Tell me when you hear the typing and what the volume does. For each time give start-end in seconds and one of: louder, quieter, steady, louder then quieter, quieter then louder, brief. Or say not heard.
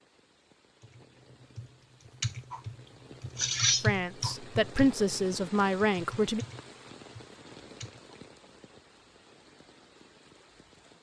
0.8-8.2 louder then quieter.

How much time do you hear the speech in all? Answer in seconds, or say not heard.
3 s.